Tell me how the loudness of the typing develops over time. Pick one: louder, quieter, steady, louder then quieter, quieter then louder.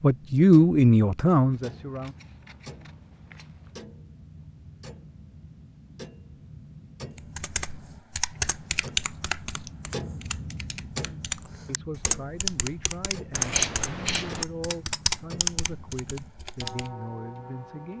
quieter then louder.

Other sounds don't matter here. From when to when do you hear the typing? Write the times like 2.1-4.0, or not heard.
7.2-16.9.